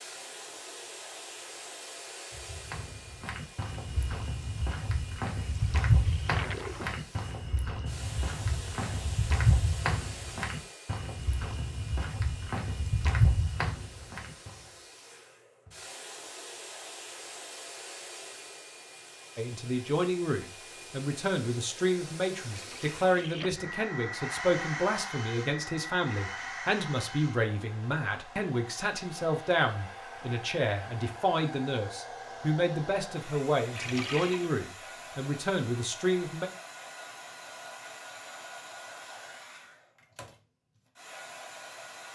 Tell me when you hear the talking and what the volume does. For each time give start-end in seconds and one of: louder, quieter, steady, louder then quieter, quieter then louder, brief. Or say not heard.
19.4-36.5 steady.